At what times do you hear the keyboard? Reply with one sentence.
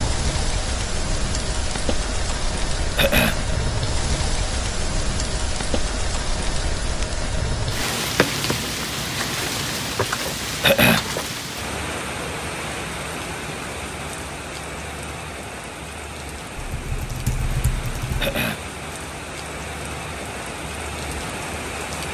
The keyboard can be heard from 16.6 to 18.4 s.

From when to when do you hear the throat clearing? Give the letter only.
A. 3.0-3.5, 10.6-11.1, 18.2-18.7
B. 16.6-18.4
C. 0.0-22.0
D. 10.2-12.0
A.